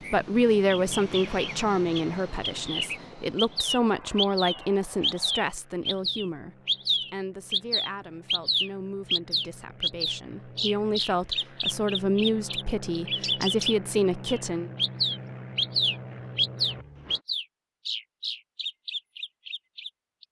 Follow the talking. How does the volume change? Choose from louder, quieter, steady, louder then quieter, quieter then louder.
quieter then louder.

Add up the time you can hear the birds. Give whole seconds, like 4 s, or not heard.
20 s.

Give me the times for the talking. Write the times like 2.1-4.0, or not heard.
0.1-14.7.